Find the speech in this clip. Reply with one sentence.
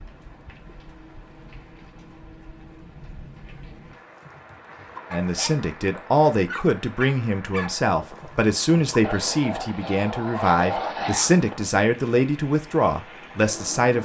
You can hear the speech from 5.1 to 13.9 s.